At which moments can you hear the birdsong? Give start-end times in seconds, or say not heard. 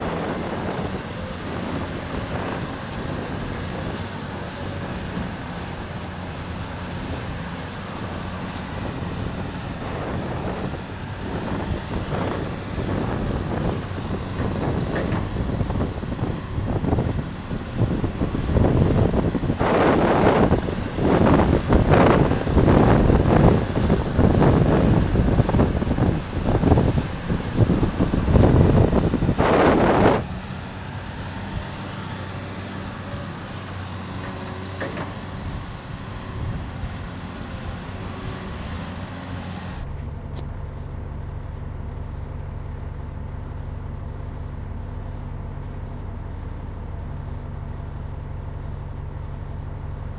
not heard.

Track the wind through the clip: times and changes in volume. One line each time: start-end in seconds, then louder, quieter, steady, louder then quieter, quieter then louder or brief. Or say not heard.
0.0-30.2 louder.